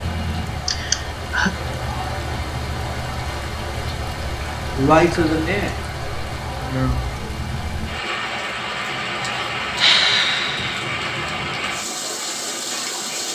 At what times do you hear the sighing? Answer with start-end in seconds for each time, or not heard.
0.7-1.5, 4.8-5.8, 6.6-7.0, 9.8-10.8.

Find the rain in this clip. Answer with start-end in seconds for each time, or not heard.
0.0-13.3.